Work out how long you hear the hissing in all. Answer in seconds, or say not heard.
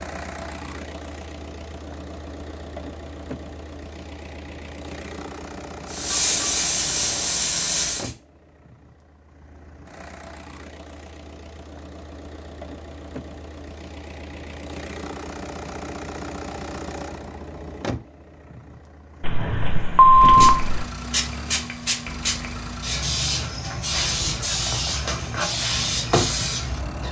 9 s.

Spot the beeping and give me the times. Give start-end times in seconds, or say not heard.
19.2-20.9.